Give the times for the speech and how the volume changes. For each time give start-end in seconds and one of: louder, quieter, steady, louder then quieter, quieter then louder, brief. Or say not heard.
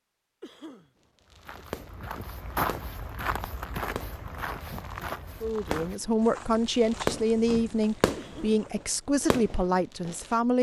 5.4-10.5 steady.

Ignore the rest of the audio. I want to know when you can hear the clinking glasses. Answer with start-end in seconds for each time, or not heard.
not heard.